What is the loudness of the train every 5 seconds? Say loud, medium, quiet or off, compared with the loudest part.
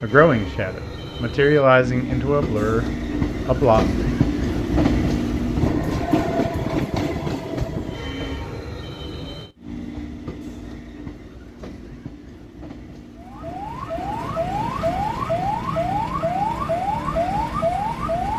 loud, loud, quiet, quiet.